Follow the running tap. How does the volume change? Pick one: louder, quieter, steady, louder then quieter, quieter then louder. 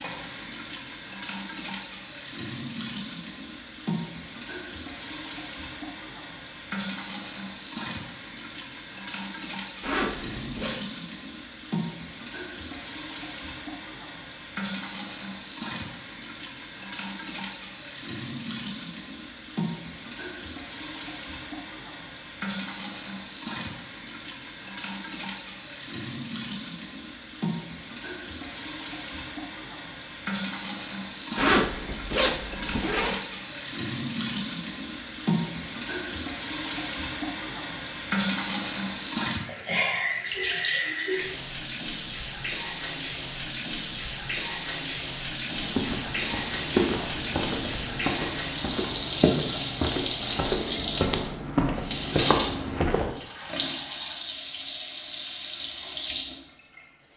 louder.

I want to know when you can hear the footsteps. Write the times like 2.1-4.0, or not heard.
45.5-53.1.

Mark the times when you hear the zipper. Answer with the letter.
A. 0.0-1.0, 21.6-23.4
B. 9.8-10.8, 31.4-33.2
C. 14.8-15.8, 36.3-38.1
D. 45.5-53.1
B.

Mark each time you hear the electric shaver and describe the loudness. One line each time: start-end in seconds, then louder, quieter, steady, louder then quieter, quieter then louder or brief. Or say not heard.
not heard.